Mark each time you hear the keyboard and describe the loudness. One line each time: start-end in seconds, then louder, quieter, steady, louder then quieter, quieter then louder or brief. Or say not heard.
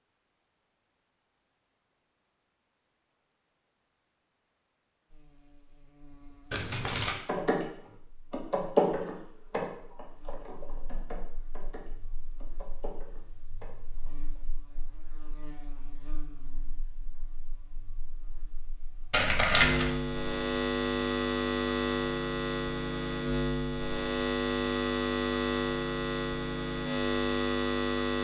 6.8-7.7 brief
8.3-14.4 quieter.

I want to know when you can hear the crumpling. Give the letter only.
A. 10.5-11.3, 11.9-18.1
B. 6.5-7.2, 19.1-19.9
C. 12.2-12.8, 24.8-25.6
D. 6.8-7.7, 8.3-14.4
B.